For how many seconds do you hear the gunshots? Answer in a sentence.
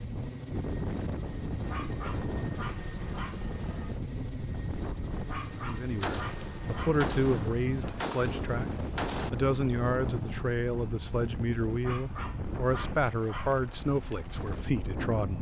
The gunshots can be heard for 3 seconds in total.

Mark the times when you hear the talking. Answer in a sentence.
You can hear the talking from 5.5 to 15.3 s.